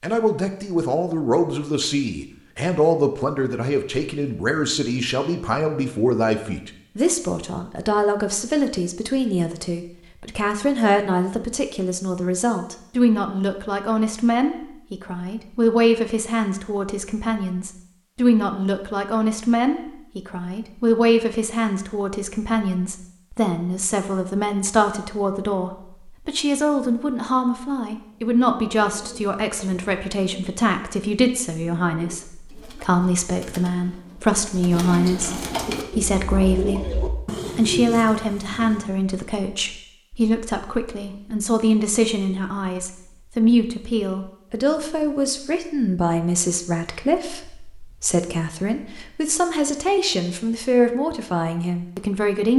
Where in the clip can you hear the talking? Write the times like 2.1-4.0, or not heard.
0.0-36.9, 37.5-52.5.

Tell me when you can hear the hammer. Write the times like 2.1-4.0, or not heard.
not heard.